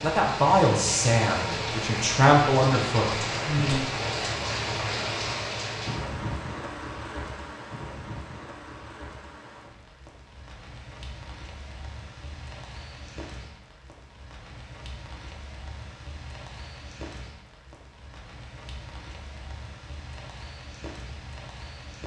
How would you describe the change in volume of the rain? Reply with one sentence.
The volume of the rain goes down.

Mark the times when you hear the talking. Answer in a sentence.
The talking can be heard from 0.0 to 3.8 s.